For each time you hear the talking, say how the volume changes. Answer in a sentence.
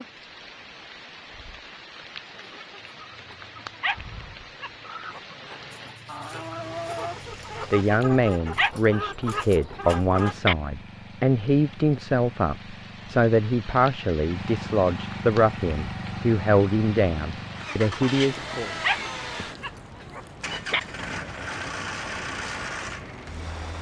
You can hear the talking from 7.7 to 18.7 s, at a steady volume.